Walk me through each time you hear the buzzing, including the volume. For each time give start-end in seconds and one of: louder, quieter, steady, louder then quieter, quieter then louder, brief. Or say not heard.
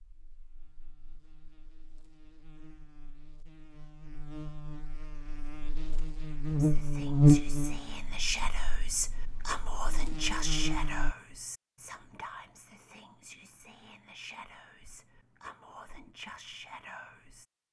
0.1-11.2 louder then quieter.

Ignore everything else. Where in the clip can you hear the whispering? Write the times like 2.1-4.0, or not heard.
6.5-17.4.